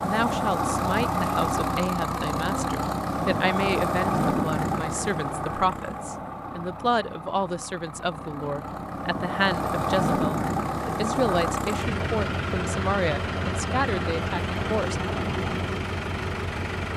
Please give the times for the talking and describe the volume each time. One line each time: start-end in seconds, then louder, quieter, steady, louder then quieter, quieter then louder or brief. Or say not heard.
0.0-14.9 steady.